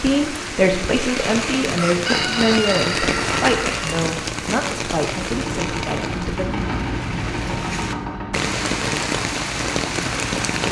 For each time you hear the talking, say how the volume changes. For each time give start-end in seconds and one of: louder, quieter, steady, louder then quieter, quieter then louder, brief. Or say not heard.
0.0-6.5 quieter.